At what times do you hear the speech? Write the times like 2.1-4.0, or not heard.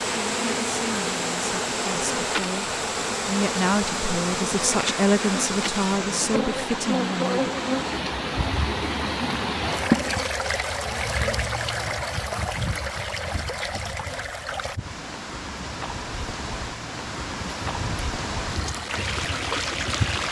0.3-7.5.